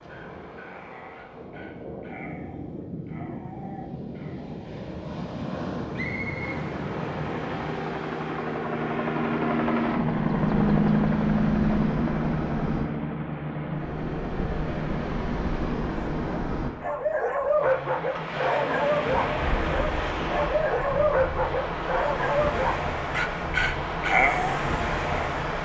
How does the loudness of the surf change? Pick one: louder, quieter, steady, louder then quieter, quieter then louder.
louder.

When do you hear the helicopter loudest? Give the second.
11 s.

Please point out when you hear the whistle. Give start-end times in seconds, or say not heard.
6.0-6.6.